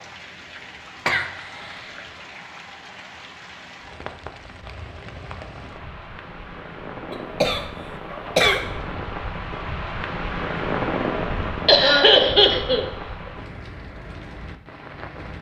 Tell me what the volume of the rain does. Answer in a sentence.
The loudness of the rain goes up, then down.